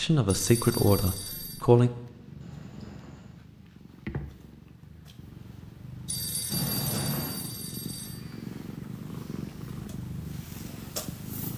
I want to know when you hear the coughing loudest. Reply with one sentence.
The loudest moment of the coughing is at 7 seconds.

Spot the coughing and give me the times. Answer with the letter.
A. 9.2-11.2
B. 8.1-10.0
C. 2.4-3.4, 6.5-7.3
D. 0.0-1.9
C.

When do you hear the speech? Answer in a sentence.
You can hear the speech from 0.0 to 1.9 s.